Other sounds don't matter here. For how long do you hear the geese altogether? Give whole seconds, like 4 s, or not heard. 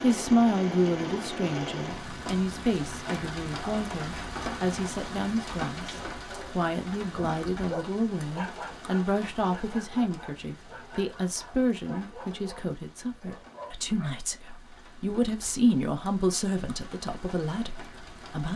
not heard.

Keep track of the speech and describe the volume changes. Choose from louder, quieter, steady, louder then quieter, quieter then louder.
steady.